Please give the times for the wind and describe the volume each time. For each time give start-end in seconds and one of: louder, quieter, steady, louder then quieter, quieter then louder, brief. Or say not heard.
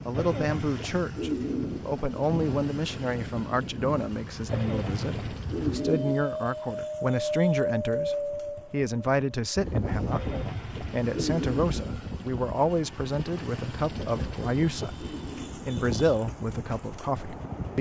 0.0-17.7 louder then quieter.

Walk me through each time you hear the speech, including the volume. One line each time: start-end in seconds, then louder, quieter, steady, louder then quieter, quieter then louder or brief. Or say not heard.
0.1-17.7 steady.